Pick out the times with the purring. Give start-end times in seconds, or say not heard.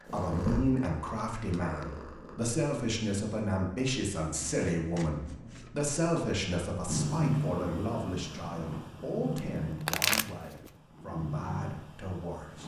0.0-2.4, 6.8-12.6.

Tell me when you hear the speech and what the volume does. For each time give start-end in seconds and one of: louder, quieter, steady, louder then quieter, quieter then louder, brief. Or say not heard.
0.1-12.6 quieter.